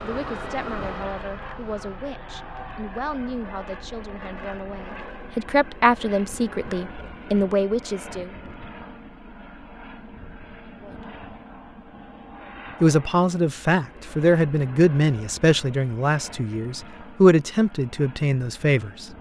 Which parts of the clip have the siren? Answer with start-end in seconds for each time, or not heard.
0.0-2.0.